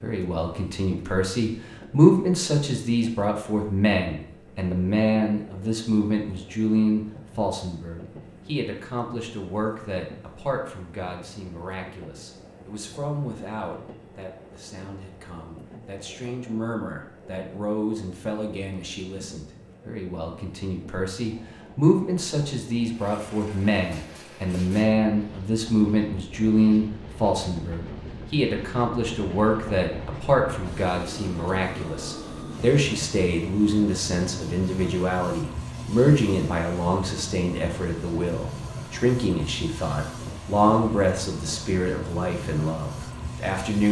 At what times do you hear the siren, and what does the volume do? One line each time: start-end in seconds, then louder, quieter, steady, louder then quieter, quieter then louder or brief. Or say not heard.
not heard.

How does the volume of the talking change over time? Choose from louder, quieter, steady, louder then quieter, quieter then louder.
quieter then louder.